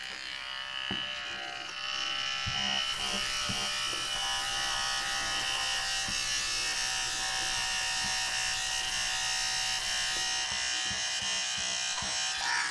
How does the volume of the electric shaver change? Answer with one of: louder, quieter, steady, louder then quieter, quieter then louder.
steady.